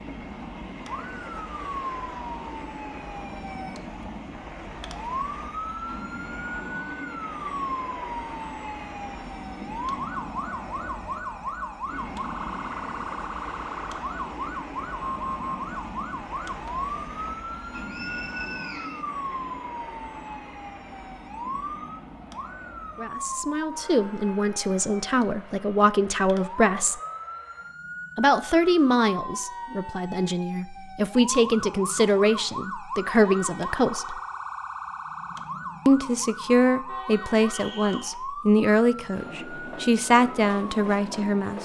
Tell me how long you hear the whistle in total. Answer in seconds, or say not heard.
2 s.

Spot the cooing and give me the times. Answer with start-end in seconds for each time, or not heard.
not heard.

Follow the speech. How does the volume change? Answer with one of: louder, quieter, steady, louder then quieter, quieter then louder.
steady.